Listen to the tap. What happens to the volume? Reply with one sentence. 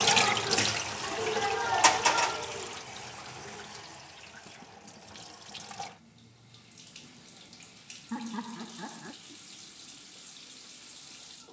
The volume of the tap goes down.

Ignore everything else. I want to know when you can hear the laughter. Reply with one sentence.
You can hear the laughter from 8.1 to 9.2 s.